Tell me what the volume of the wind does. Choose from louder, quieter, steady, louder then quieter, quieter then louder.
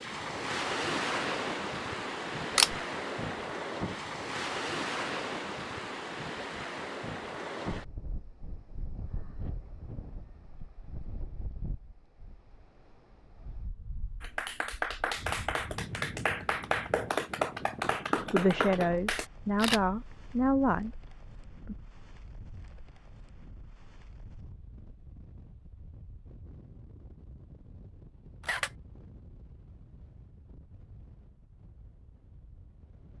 quieter.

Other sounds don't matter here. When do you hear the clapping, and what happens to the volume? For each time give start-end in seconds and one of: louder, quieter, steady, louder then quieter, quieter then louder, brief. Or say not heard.
14.2-19.3 steady.